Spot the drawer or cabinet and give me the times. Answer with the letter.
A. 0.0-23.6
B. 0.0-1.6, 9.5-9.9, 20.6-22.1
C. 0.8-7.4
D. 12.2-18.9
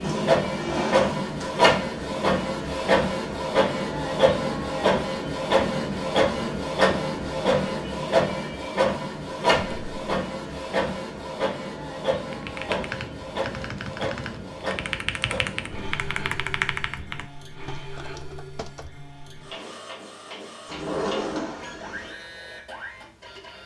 B.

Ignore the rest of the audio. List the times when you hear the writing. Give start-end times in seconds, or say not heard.
not heard.